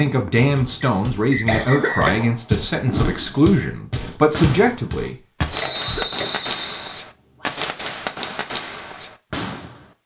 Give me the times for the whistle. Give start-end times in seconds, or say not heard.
0.8-2.1, 5.5-7.0.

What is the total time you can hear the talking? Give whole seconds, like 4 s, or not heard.
5 s.